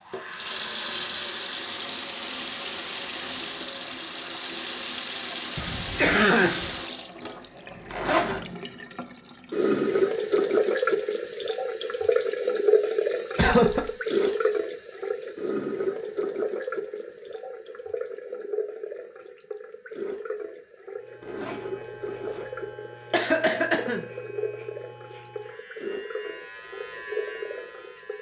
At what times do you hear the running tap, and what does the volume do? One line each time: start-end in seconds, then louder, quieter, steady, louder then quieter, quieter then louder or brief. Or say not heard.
0.1-28.1 quieter.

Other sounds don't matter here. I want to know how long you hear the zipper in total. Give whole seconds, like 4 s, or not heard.
2 s.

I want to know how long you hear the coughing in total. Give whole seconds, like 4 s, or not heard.
3 s.